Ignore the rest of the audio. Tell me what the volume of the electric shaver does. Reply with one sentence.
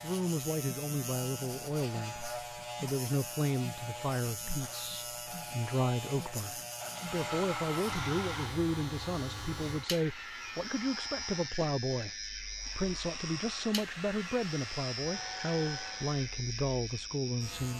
The loudness of the electric shaver stays about the same.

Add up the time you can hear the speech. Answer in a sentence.
The speech can be heard for 18 seconds in total.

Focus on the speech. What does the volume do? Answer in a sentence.
The volume of the speech stays about the same.